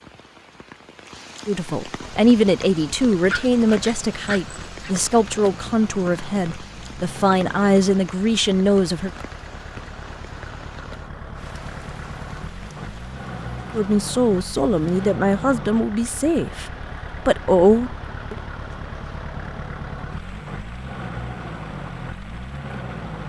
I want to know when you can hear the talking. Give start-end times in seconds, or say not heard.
1.4-9.1, 13.8-18.4.